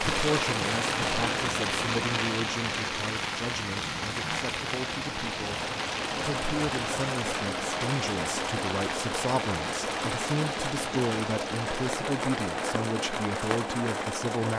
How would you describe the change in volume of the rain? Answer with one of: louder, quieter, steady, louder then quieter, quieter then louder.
quieter.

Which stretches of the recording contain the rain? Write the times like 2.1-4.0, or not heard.
0.0-14.4.